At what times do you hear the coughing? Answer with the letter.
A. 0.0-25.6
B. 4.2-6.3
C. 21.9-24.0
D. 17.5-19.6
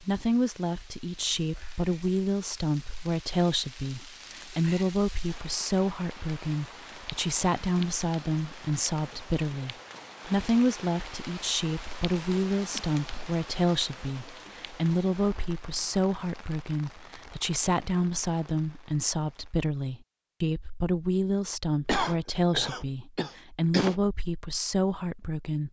C.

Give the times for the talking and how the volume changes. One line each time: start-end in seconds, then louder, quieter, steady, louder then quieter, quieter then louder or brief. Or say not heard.
0.0-25.6 steady.